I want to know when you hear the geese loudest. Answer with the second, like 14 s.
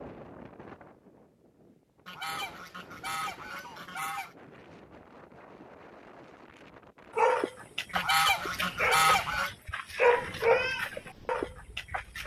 9 s.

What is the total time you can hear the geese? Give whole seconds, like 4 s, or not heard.
4 s.